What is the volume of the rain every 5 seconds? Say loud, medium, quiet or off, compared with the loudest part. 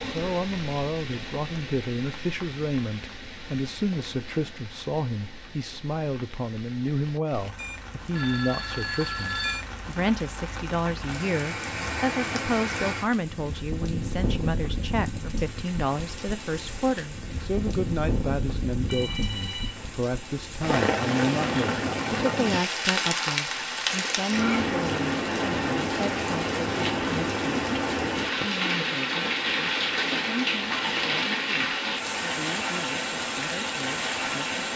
quiet, quiet, medium, medium, loud, loud, loud.